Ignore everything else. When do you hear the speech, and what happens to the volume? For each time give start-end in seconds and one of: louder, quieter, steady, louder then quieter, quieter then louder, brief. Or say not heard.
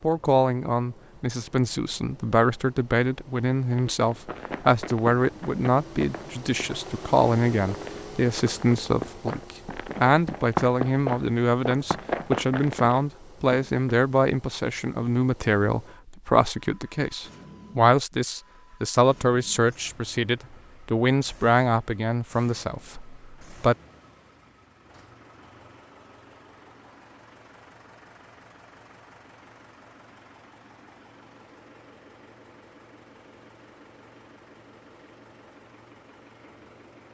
0.0-23.8 steady.